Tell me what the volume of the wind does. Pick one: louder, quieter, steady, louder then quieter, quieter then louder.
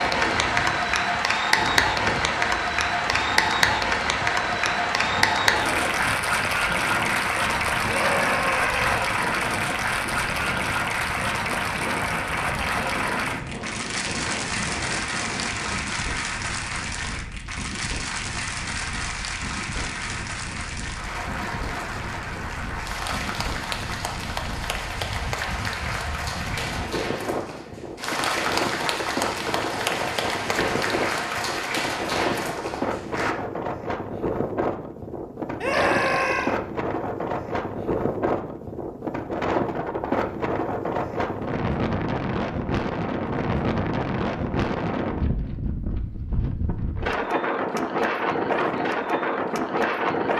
louder.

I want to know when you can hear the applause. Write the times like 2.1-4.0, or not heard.
0.0-33.4.